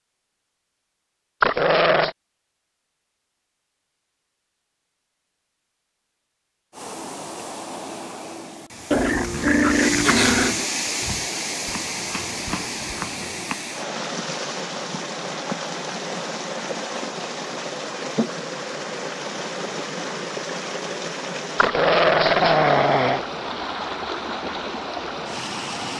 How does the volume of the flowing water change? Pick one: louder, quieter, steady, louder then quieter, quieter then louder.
steady.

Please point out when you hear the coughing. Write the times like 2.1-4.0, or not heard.
not heard.